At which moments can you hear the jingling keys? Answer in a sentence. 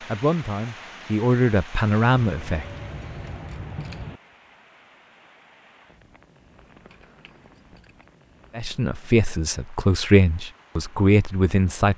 The jingling keys can be heard from 2.2 to 4.2 s and from 6.6 to 8.2 s.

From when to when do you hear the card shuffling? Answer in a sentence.
The card shuffling can't be heard in this clip.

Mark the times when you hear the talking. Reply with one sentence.
The talking can be heard from 0.1 to 2.6 s and from 8.6 to 11.9 s.